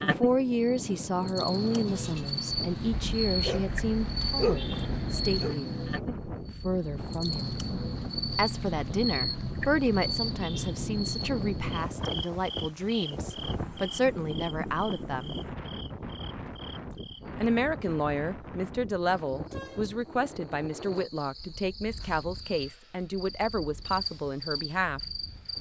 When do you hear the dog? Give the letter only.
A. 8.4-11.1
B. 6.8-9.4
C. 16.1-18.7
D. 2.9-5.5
D.